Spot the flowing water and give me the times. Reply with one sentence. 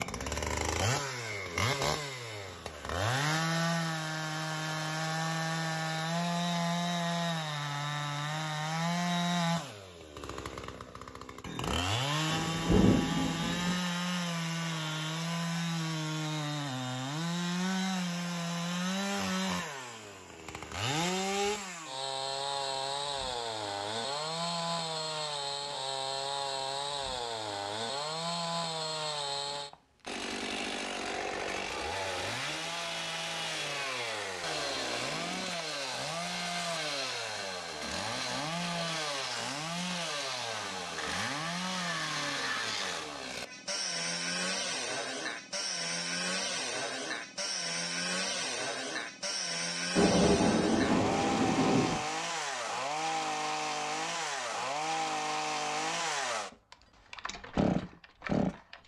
The flowing water can't be heard in this clip.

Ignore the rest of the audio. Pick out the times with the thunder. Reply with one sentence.
You can hear the thunder from 12.3 to 13.8 s and from 50.0 to 52.0 s.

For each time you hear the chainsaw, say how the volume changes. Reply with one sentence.
You can hear the chainsaw from 0.0 to 58.8 s, at a steady volume.